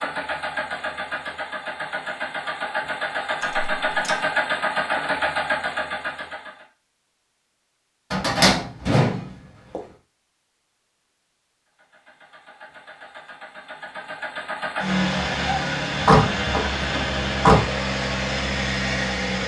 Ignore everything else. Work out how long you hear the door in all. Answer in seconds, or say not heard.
4 s.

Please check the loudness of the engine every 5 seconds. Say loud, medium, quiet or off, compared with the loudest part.
loud, loud, medium, loud.